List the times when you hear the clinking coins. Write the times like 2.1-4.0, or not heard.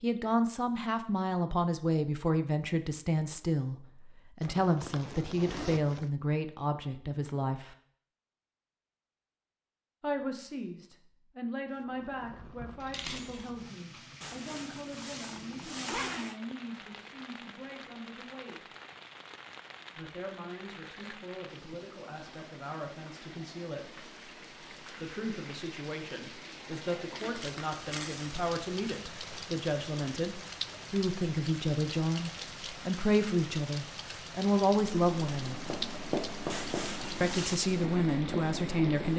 12.8-13.5, 27.1-28.4.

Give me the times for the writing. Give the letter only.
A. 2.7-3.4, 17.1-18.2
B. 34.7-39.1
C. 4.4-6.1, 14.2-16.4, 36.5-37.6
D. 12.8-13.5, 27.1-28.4
B.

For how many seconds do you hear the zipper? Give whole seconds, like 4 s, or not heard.
5 s.